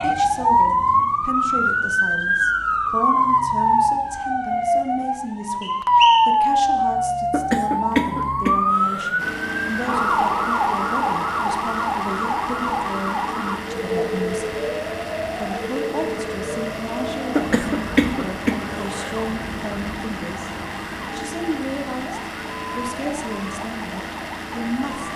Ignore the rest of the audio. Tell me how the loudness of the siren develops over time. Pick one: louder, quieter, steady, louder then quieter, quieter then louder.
quieter.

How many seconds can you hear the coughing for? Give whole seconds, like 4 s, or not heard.
4 s.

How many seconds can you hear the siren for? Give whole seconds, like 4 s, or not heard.
25 s.